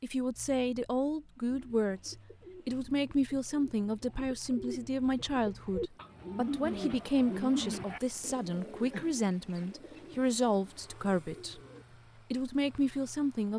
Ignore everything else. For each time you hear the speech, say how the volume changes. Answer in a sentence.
The speech can be heard from 0.0 to 11.6 s, at a steady volume; and briefly from 12.3 to 13.5 s.